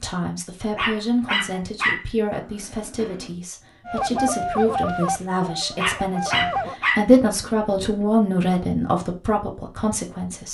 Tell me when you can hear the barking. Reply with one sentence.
The barking can be heard from 0.7 to 3.3 s and from 5.7 to 8.1 s.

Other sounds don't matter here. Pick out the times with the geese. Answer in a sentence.
The geese can be heard from 3.9 to 6.8 s.